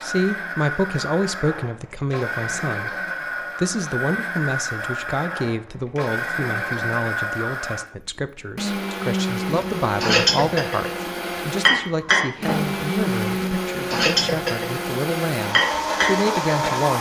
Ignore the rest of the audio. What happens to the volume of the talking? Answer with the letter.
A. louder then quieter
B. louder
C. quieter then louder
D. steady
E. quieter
D.